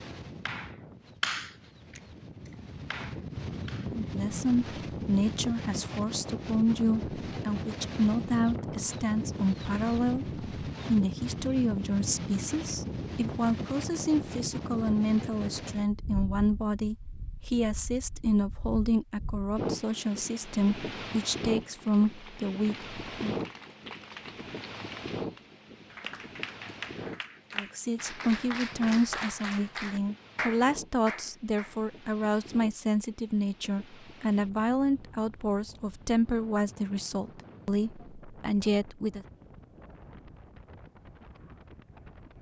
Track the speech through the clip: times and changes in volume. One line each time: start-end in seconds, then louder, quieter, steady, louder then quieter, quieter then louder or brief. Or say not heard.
3.9-23.4 steady
27.6-39.2 steady.